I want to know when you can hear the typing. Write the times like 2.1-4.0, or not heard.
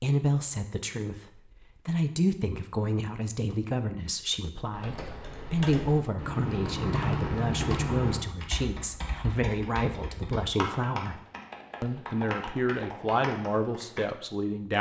4.7-14.1.